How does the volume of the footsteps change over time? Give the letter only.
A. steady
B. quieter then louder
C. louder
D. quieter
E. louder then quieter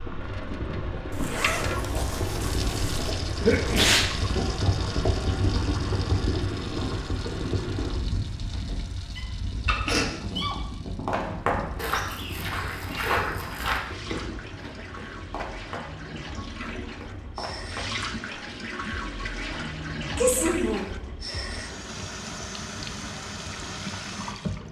D.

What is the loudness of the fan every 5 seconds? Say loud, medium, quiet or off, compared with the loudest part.
loud, loud, medium, quiet, quiet.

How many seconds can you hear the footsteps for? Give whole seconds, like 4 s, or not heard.
7 s.